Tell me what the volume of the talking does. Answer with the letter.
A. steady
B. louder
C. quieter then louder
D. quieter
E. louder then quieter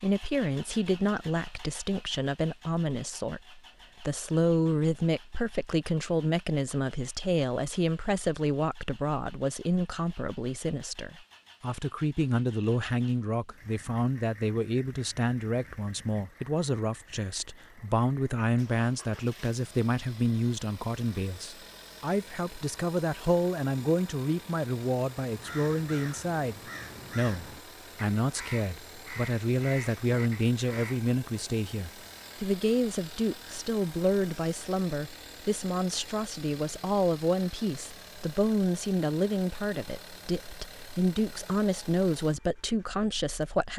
A.